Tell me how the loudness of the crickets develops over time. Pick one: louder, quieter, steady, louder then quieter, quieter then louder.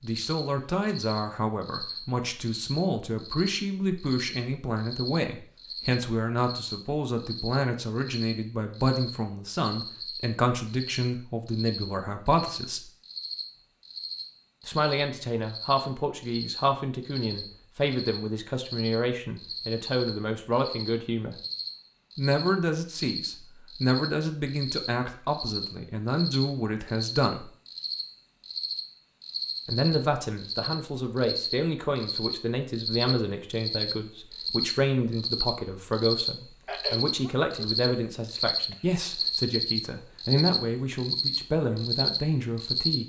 louder.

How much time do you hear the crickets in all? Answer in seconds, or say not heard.
43 s.